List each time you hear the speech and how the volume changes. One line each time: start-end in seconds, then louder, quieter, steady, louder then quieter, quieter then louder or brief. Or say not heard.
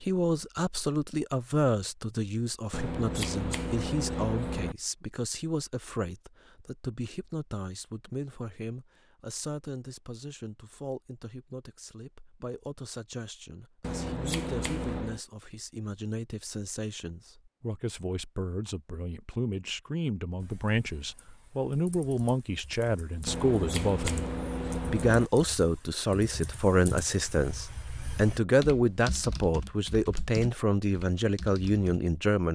0.0-32.5 quieter then louder.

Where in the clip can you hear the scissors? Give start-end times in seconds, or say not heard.
2.7-4.8, 13.8-15.2, 23.2-25.3.